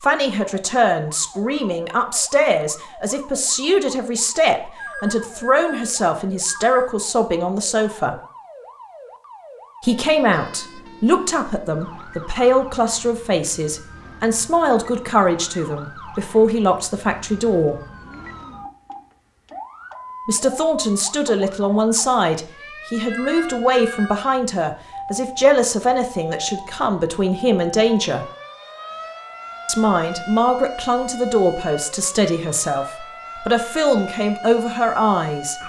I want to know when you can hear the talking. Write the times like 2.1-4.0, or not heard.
0.0-8.2, 9.8-17.8, 20.2-28.2, 29.6-35.5.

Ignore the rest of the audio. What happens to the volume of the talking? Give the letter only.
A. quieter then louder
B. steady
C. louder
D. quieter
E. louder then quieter
B.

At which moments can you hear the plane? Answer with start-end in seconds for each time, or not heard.
not heard.